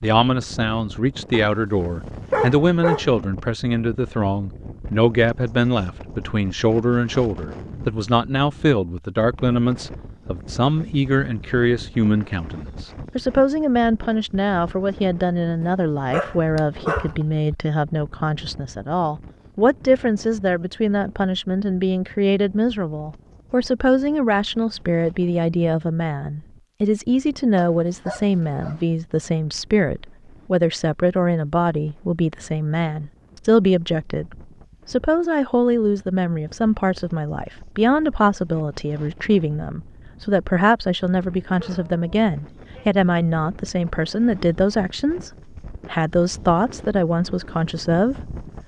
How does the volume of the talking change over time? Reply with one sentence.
The volume of the talking stays about the same.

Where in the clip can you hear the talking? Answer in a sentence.
You can hear the talking from 0.0 to 48.3 s.